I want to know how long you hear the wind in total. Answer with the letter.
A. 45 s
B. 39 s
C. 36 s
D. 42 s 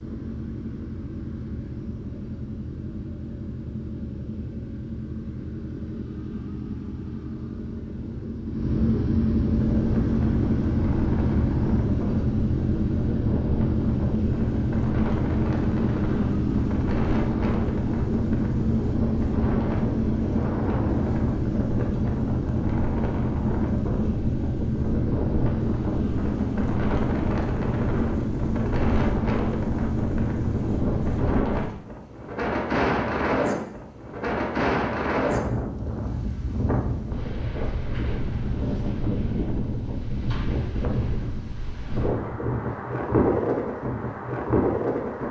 C.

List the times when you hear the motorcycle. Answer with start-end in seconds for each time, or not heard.
0.0-31.3.